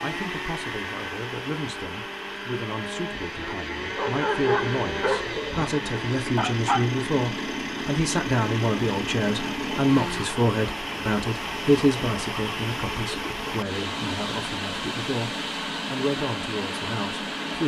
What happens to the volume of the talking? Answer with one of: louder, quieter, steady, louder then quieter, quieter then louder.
louder then quieter.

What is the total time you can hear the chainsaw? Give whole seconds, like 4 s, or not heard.
10 s.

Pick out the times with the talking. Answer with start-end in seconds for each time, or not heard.
0.0-17.6.